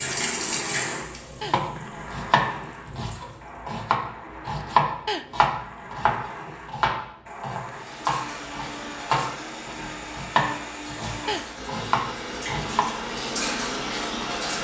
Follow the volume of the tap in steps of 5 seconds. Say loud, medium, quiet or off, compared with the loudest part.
loud, medium, loud.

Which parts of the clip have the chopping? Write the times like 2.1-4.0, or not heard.
1.4-12.8.